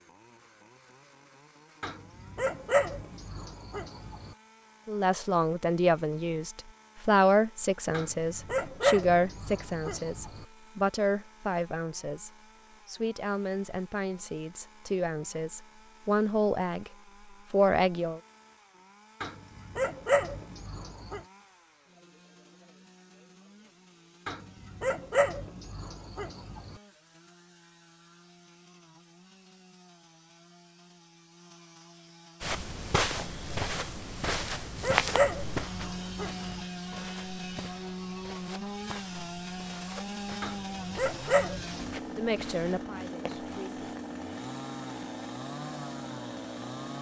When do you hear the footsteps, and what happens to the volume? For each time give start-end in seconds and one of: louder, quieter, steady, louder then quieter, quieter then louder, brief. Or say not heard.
32.4-44.0 quieter.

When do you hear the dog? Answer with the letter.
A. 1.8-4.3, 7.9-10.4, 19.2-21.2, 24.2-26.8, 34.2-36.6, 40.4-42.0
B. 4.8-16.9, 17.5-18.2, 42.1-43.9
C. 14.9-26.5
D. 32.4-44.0
A.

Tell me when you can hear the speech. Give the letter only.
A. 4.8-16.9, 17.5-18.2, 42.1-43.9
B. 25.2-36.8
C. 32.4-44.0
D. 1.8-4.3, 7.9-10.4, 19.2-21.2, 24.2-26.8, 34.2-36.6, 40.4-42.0
A.